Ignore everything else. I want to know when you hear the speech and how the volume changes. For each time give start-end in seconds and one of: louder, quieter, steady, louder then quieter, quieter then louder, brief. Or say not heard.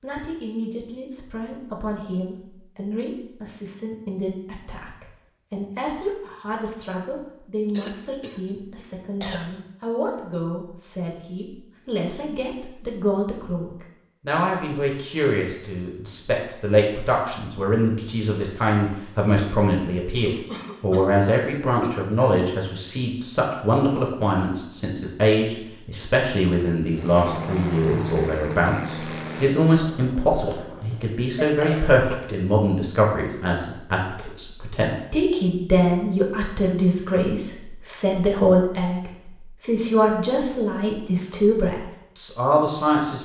0.0-43.2 louder.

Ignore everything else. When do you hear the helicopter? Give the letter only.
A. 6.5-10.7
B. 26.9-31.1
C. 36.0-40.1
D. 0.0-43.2
B.